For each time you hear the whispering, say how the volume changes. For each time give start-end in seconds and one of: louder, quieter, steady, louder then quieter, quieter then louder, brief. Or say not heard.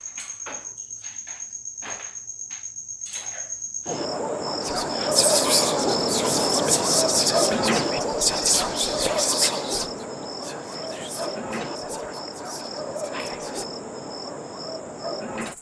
4.6-13.7 quieter.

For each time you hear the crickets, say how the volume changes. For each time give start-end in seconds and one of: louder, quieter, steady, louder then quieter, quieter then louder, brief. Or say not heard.
0.0-15.5 louder then quieter.